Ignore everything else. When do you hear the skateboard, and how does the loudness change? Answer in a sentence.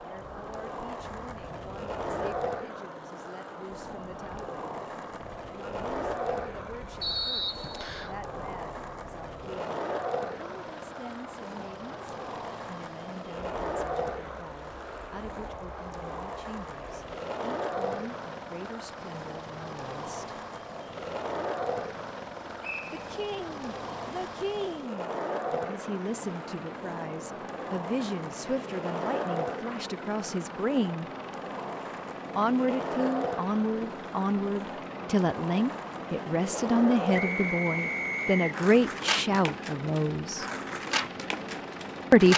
The skateboard can be heard from 0.0 to 42.3 s, at a steady volume.